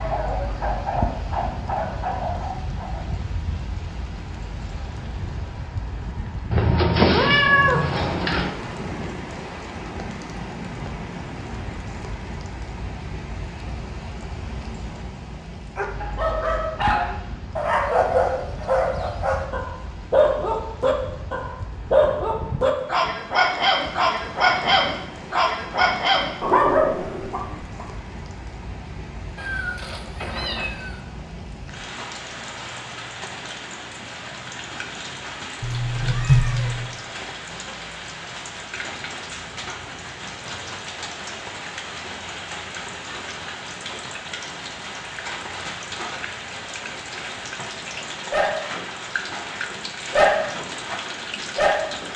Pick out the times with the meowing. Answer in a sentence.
The meowing can be heard from 6.5 to 8.5 s, from 29.4 to 31.0 s and from 35.6 to 36.9 s.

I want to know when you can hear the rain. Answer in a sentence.
You can hear the rain from 0.0 to 52.1 s.